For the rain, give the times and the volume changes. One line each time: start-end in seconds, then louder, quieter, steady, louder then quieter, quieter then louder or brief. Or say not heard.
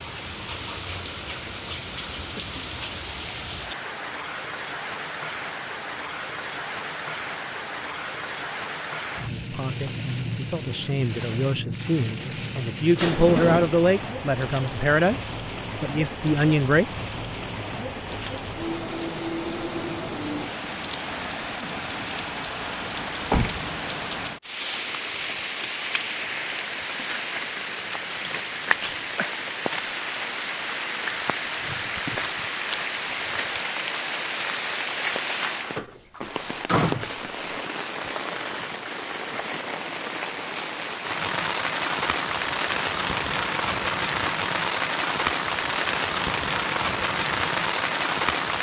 0.0-48.5 louder.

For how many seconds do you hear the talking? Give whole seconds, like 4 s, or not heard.
8 s.